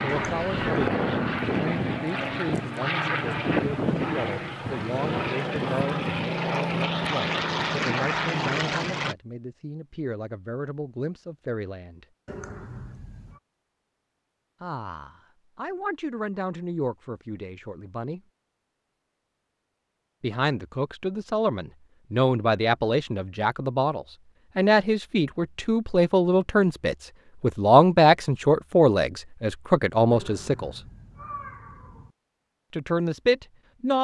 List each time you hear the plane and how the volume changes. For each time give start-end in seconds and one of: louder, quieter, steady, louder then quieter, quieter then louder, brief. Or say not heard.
0.0-9.2 steady.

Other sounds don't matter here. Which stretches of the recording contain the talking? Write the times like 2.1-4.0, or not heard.
0.0-12.1, 14.6-18.2, 20.2-30.8, 32.7-33.9.